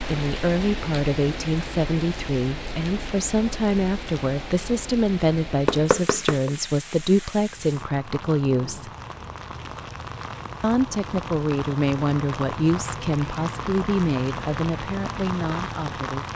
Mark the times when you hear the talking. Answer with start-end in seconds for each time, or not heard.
0.0-8.9, 10.6-16.3.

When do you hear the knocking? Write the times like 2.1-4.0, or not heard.
5.7-6.5.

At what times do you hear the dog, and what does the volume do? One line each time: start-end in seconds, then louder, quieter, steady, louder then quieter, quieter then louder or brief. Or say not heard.
not heard.